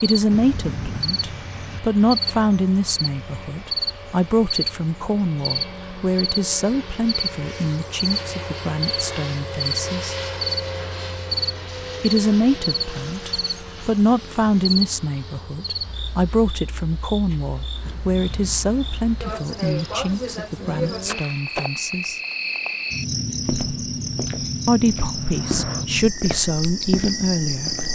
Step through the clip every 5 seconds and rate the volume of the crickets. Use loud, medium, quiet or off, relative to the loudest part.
loud, loud, loud, medium, loud, loud.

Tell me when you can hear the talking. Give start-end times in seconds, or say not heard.
0.0-10.2, 12.0-22.2, 24.6-27.7.